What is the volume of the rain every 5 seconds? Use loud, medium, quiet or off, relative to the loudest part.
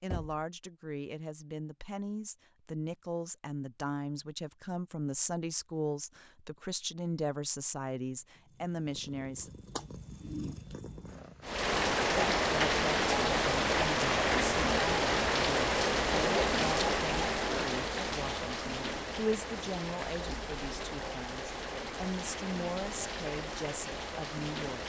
off, off, loud, loud, medium.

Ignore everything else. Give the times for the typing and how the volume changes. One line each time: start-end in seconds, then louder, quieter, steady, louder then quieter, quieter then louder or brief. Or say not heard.
not heard.